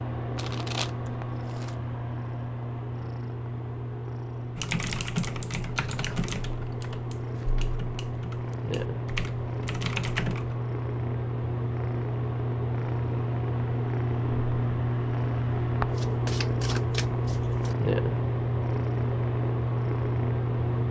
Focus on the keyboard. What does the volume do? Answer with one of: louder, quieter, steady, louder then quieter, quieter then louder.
quieter then louder.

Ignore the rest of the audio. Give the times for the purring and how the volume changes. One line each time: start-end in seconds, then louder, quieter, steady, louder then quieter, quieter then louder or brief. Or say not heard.
0.0-20.8 louder.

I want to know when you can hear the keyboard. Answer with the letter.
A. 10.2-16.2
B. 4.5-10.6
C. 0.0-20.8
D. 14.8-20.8
B.